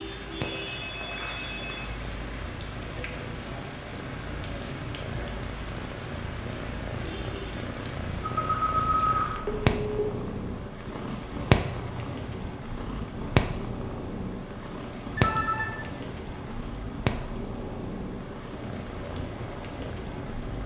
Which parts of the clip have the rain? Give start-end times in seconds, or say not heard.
0.0-20.6.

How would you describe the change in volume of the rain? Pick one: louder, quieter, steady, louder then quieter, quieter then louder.
steady.